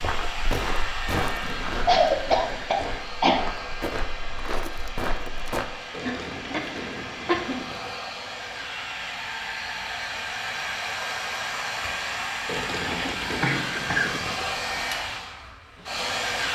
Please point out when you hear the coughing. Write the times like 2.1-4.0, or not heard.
1.4-3.5, 6.0-7.6, 12.9-14.2.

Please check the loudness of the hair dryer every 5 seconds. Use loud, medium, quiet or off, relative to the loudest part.
medium, medium, loud, loud.